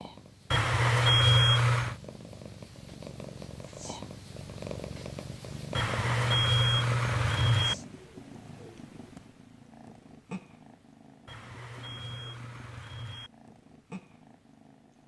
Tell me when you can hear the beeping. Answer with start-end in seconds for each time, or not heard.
0.5-1.9, 5.8-7.8, 11.2-13.3.